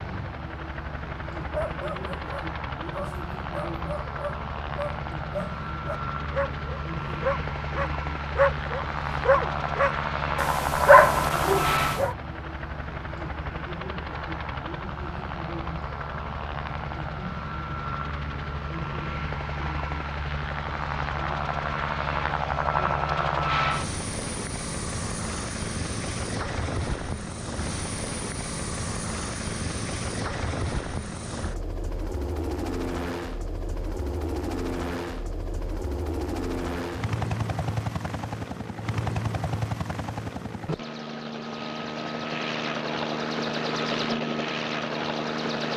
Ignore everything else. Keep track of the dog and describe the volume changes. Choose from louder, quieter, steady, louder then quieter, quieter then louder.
louder then quieter.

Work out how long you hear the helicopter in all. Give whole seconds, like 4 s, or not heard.
46 s.